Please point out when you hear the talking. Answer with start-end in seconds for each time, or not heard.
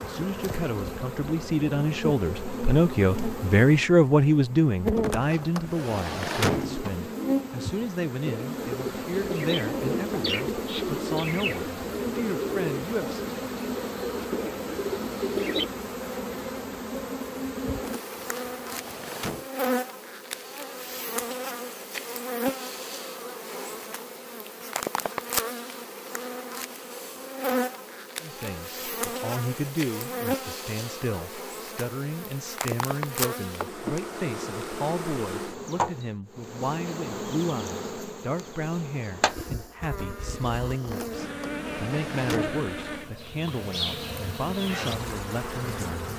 0.0-13.2, 28.2-46.1.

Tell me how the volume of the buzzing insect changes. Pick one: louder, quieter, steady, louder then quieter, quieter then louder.
steady.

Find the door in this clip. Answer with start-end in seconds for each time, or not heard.
5.0-6.8, 17.8-19.4, 40.8-42.6.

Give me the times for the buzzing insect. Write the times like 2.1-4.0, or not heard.
0.0-46.1.